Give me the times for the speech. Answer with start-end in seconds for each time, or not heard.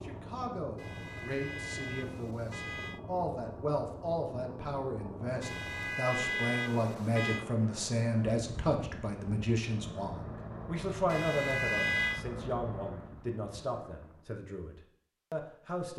0.0-15.9.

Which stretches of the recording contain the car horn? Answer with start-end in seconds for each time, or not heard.
0.8-3.0, 5.4-7.5, 11.1-12.2.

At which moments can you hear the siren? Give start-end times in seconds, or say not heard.
not heard.